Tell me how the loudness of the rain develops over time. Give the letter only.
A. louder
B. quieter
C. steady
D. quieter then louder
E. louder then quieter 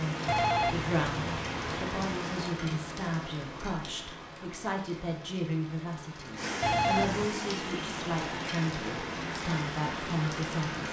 D.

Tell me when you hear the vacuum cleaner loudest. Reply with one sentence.
The loudest moment of the vacuum cleaner is at 7 seconds.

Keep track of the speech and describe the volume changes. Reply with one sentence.
The volume of the speech stays about the same.